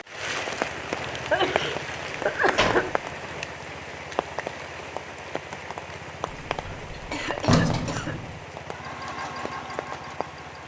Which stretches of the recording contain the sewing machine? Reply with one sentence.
The sewing machine can be heard from 8.7 to 10.6 s.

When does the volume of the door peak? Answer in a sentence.
The loudest moment of the door is at 8 seconds.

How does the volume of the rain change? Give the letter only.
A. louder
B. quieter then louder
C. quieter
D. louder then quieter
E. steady
C.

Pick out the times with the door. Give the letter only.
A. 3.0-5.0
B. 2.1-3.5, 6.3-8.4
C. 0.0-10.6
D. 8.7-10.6
B.